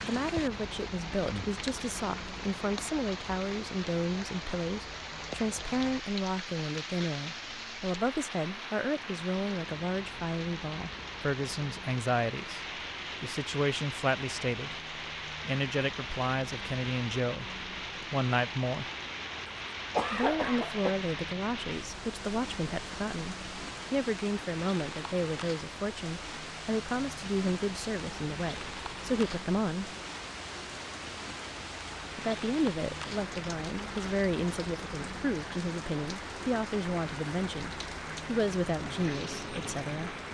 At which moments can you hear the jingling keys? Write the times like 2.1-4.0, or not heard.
not heard.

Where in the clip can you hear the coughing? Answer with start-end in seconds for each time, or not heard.
19.4-20.9.